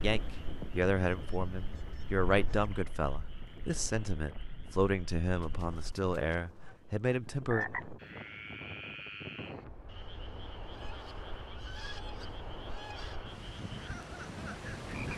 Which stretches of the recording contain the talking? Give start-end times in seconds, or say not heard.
0.0-7.7.